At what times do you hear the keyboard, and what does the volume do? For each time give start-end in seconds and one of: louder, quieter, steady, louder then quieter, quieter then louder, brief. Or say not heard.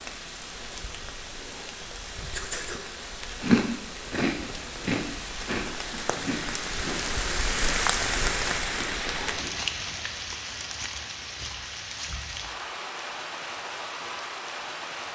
not heard.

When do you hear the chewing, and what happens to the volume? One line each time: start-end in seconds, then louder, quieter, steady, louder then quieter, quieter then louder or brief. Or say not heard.
3.4-9.5 quieter.